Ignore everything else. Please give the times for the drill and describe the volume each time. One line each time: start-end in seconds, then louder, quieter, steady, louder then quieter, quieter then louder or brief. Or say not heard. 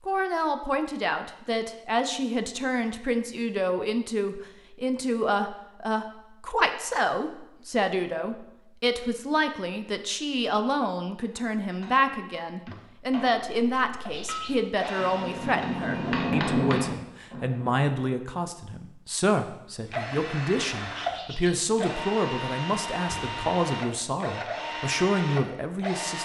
14.1-16.3 brief
19.9-26.2 steady.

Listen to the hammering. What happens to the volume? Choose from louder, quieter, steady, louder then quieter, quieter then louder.
louder.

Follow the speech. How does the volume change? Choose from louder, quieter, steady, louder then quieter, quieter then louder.
steady.